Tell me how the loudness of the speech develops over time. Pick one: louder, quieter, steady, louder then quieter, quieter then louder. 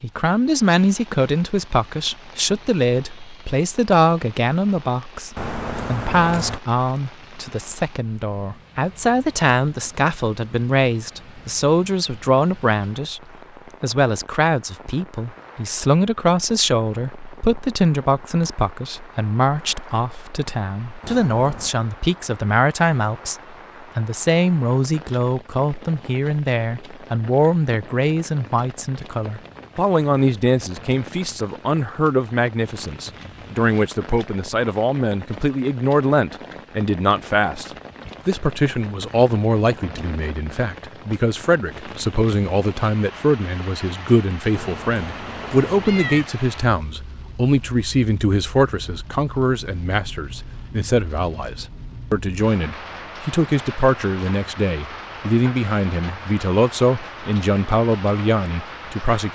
steady.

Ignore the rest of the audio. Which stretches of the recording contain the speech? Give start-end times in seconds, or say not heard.
0.0-13.2, 13.8-59.2.